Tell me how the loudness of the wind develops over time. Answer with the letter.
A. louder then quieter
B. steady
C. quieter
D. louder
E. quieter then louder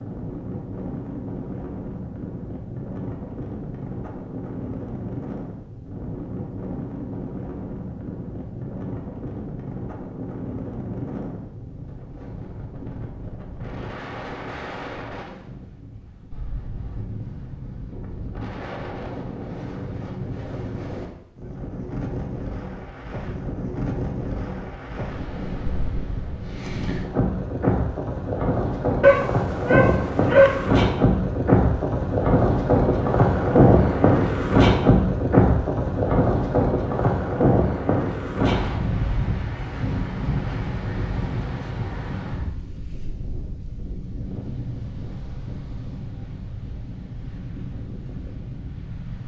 A.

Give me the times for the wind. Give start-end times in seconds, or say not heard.
0.0-49.2.